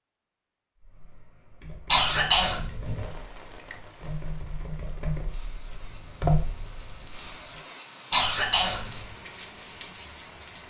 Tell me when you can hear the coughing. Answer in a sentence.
You can hear the coughing from 1.9 to 3.0 s and from 8.1 to 9.1 s.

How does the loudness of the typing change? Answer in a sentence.
The volume of the typing goes up.